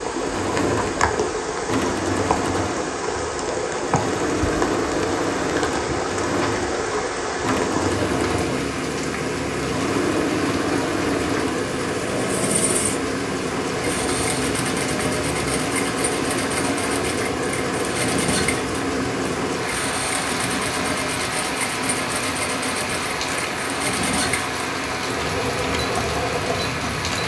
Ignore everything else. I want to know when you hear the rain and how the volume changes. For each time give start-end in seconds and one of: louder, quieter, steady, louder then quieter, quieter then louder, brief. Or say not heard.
0.0-27.2 steady.